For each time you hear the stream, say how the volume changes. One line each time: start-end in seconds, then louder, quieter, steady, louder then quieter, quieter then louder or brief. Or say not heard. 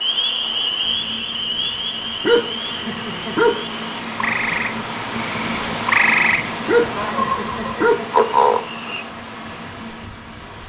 0.0-10.6 louder then quieter.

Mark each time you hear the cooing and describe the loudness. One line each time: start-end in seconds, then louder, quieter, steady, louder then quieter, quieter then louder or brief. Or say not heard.
not heard.